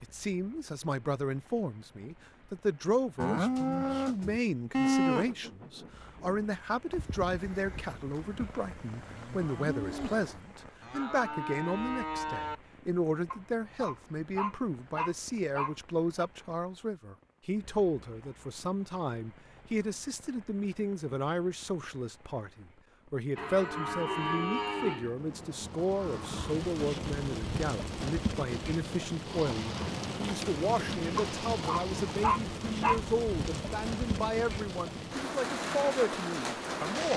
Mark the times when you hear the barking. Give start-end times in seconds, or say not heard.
13.3-16.3, 31.1-33.0.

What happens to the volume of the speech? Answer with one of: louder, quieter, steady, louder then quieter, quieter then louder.
steady.